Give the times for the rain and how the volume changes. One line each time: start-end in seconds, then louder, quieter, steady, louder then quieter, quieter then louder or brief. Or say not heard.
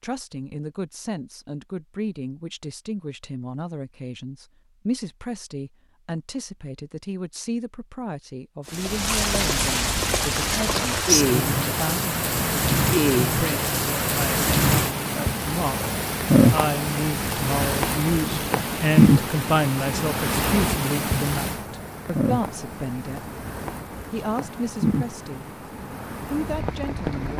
8.7-27.3 quieter.